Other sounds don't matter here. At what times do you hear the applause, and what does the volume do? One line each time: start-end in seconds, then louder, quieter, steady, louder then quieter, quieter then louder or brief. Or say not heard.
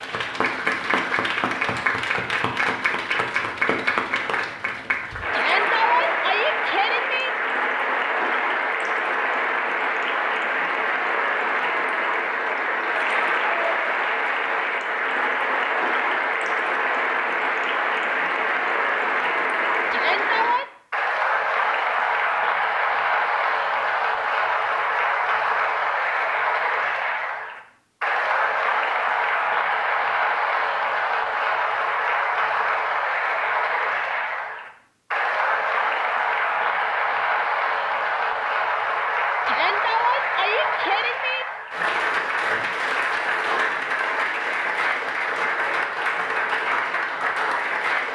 0.0-48.1 steady.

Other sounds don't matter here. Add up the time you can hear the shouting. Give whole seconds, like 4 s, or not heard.
5 s.